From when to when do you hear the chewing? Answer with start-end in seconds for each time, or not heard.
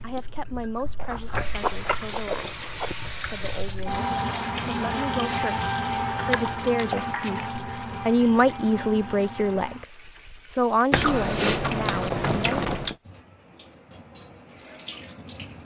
0.9-3.0, 6.1-7.5, 10.9-12.9.